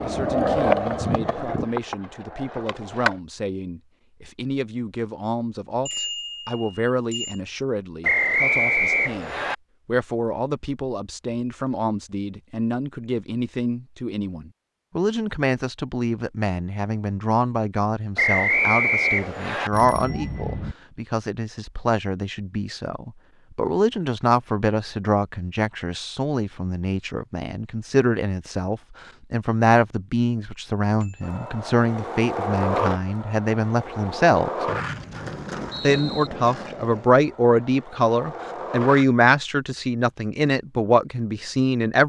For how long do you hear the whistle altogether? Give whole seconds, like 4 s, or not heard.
5 s.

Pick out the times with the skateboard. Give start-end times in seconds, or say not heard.
0.0-3.1, 31.2-39.0.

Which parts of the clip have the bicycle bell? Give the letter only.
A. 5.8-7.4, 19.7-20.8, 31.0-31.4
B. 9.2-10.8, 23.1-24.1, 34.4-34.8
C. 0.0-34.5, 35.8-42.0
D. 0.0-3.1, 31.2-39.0
A.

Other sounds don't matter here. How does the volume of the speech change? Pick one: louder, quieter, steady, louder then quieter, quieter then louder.
louder.